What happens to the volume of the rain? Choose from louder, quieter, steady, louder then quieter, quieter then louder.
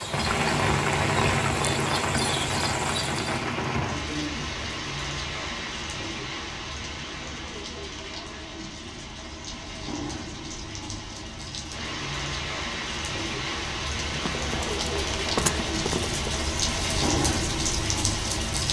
quieter then louder.